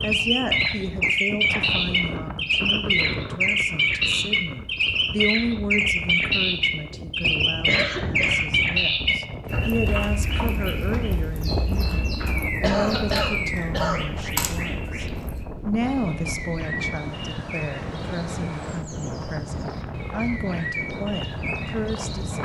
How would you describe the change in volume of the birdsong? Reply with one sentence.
The volume of the birdsong goes down.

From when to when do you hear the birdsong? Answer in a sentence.
The birdsong can be heard from 0.0 to 22.4 s.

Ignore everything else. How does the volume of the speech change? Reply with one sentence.
The loudness of the speech stays about the same.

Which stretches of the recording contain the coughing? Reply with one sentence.
You can hear the coughing from 7.7 to 8.4 s and from 12.6 to 14.1 s.